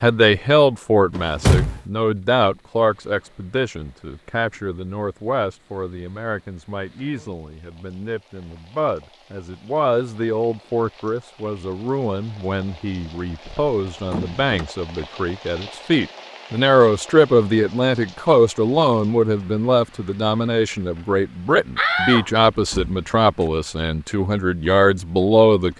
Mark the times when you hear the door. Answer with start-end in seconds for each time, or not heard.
1.1-1.8, 13.4-14.7, 21.8-22.9.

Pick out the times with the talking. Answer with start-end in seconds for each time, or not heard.
0.0-25.7.